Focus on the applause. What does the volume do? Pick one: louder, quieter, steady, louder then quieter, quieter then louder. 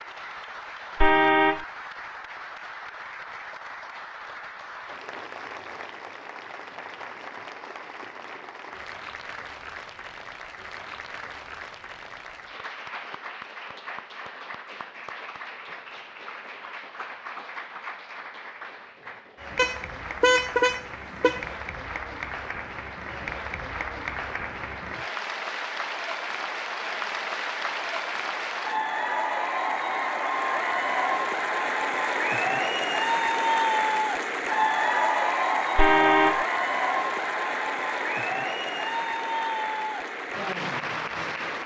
louder.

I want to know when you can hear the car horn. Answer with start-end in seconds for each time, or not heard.
1.0-1.6, 19.6-21.4, 35.8-36.5.